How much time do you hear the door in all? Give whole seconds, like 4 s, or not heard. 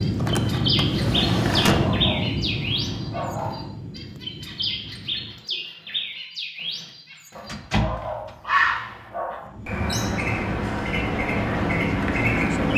3 s.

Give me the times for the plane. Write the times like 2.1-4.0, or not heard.
0.0-5.5, 9.3-12.7.